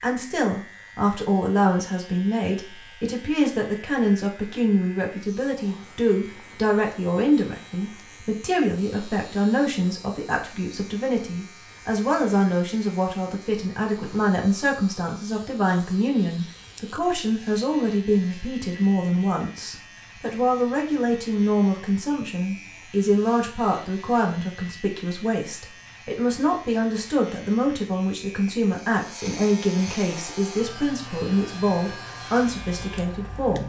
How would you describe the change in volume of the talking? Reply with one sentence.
The loudness of the talking stays about the same.